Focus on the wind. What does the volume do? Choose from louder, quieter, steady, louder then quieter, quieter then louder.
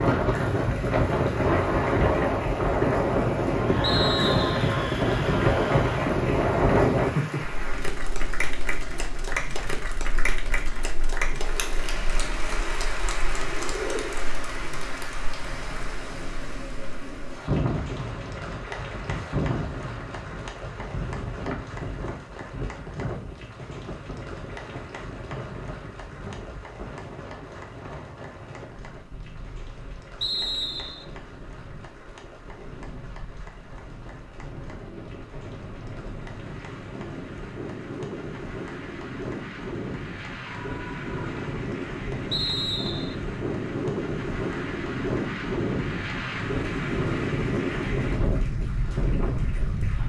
quieter then louder.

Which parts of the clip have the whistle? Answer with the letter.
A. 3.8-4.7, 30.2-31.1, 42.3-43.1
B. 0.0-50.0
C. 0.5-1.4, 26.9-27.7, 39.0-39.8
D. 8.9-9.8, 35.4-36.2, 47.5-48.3
A.